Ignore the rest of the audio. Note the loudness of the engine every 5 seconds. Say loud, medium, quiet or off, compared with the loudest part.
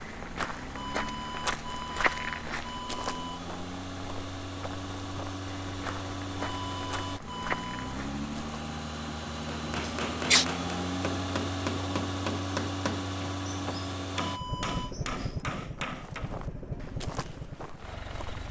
medium, loud, loud, medium.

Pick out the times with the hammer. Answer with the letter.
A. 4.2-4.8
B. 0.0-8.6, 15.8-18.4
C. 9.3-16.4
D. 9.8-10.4
C.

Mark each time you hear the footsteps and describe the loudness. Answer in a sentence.
The footsteps can be heard from 0.0 to 8.6 s, getting quieter then louder; and briefly from 15.8 to 18.4 s.